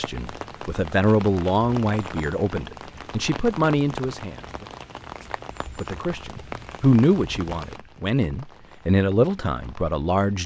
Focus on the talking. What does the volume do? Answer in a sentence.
The volume of the talking stays about the same.